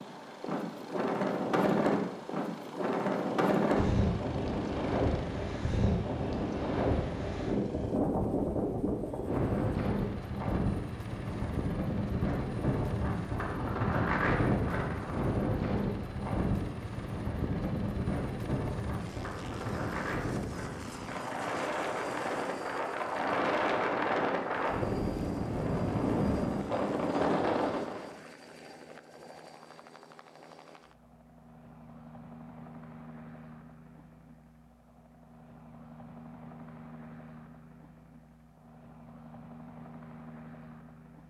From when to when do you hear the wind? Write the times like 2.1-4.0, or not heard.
0.0-28.1.